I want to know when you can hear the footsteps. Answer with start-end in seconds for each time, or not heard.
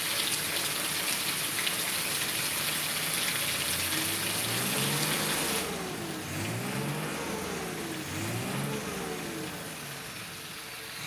not heard.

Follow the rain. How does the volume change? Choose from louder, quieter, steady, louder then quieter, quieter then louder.
quieter.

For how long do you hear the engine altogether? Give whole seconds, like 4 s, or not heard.
11 s.